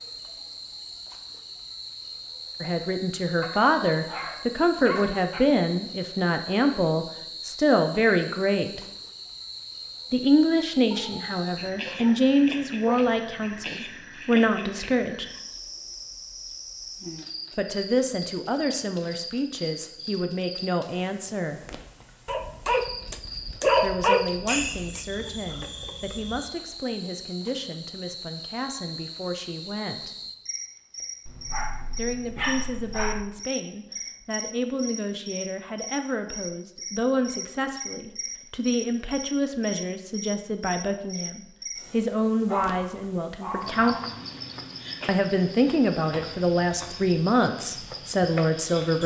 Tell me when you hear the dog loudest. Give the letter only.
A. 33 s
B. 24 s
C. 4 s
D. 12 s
B.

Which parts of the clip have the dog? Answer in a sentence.
The dog can be heard from 3.4 to 5.4 s, from 10.9 to 13.2 s, from 22.2 to 25.1 s, from 31.2 to 33.2 s and from 42.5 to 44.1 s.